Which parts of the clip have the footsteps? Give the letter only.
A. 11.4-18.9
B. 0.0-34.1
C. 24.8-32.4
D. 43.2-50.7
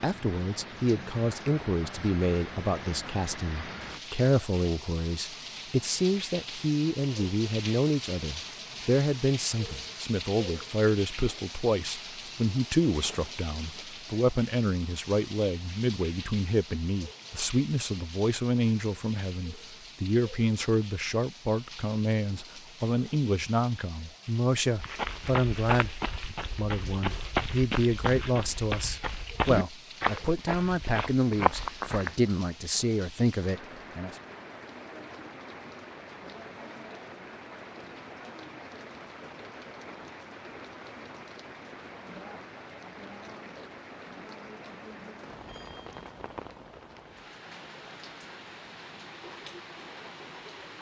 C.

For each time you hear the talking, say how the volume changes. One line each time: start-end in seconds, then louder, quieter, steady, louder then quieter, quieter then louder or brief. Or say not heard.
0.0-34.1 steady.